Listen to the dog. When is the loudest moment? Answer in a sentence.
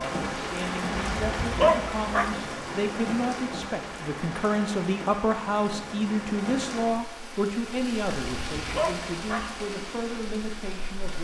The loudest moment of the dog is at 2 seconds.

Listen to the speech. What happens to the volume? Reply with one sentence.
The volume of the speech goes up, then down.